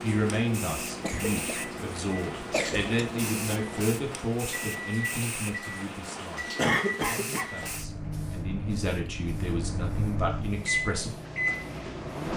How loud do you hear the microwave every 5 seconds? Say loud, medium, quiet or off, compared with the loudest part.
medium, medium, loud.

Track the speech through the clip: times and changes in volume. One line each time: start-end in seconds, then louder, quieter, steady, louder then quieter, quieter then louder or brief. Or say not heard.
0.0-11.2 quieter then louder.